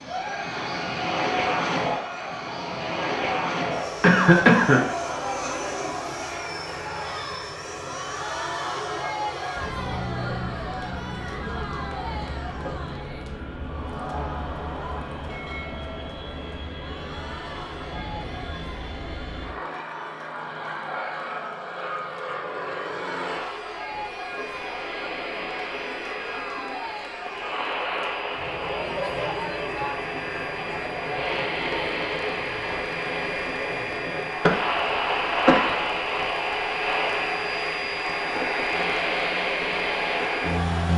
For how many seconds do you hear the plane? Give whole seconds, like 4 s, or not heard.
41 s.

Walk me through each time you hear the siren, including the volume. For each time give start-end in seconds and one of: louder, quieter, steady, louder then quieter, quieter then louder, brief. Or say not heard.
not heard.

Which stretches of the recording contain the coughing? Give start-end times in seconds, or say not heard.
4.0-4.9, 34.4-36.0.